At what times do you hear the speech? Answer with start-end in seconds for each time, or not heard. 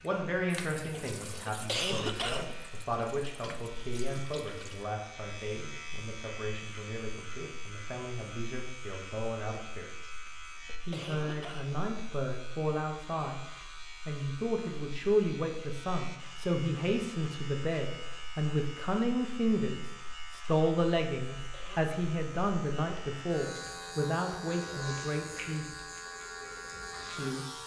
0.0-10.1, 10.8-25.6, 27.1-27.6.